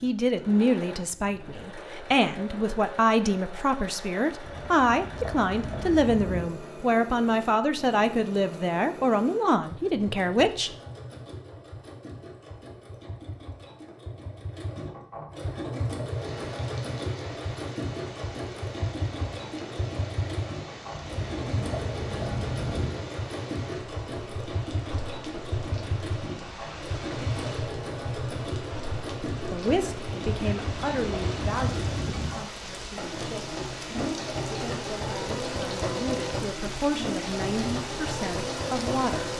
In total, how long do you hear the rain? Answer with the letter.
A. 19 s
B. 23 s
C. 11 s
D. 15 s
B.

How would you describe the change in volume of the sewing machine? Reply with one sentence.
The loudness of the sewing machine goes up.